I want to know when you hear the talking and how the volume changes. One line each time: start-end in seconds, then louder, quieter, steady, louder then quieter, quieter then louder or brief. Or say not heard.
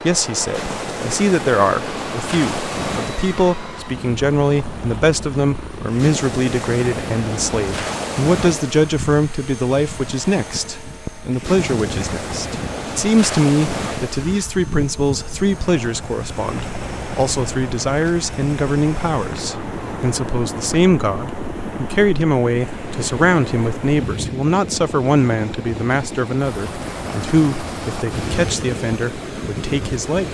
0.0-30.2 steady.